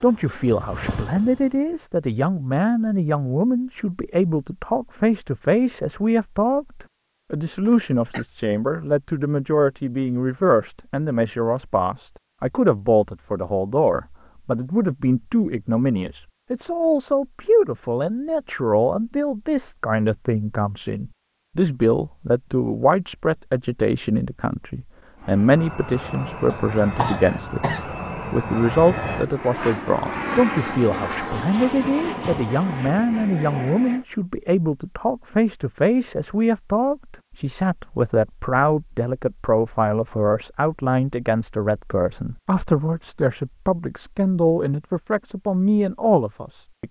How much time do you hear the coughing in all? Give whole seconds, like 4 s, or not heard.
2 s.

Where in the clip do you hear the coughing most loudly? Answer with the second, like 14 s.
27 s.